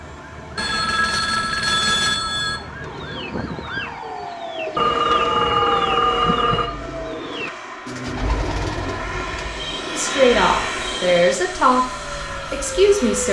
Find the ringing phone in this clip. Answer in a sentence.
The ringing phone can be heard from 0.6 to 2.6 s, from 4.8 to 6.7 s and from 9.6 to 11.3 s.